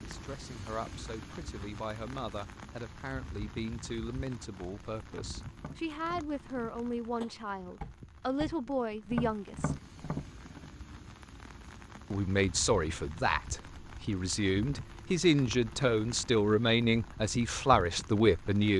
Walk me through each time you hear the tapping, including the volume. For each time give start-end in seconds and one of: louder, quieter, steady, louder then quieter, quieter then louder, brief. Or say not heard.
5.0-10.7 louder.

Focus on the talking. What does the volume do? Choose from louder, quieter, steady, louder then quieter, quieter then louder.
louder.